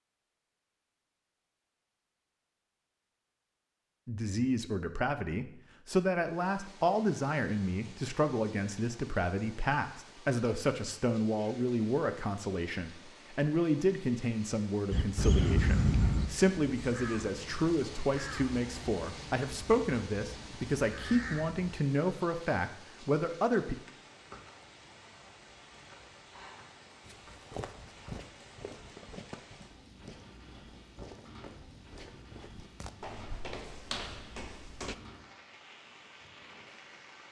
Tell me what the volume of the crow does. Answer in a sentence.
The loudness of the crow goes down, then up.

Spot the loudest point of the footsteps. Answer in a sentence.
The loudest moment of the footsteps is at 34 seconds.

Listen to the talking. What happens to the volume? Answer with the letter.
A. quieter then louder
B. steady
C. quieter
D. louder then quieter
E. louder
B.